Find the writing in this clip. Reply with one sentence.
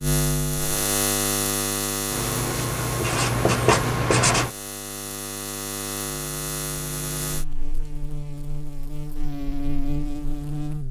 The writing can be heard from 2.1 to 4.5 s.